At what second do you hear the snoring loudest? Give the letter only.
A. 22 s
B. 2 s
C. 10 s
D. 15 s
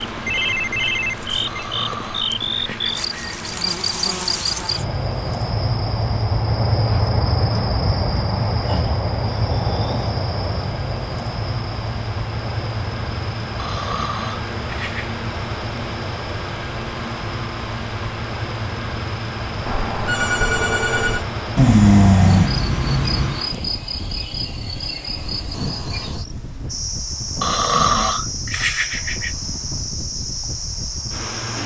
A.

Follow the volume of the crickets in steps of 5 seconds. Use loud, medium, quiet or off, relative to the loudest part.
loud, loud, medium, medium, medium, medium, medium.